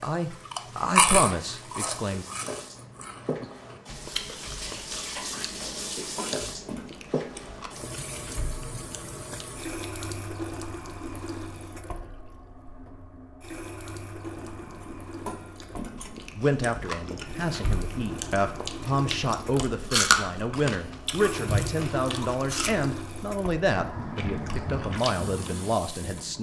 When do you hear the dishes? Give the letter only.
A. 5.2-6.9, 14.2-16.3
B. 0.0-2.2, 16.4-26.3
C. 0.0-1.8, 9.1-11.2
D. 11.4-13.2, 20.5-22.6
A.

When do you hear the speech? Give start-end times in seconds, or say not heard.
0.0-2.2, 16.4-26.3.